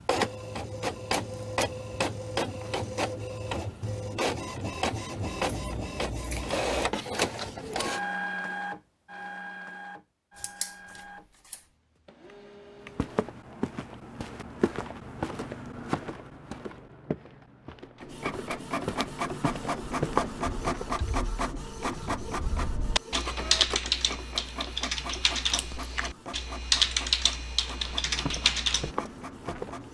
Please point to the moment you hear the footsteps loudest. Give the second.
20 s.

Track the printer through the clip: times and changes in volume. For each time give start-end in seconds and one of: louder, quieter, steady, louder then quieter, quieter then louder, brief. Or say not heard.
0.0-13.2 quieter
18.0-29.8 quieter.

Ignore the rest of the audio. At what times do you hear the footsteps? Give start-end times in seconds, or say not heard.
12.8-20.9, 27.8-29.8.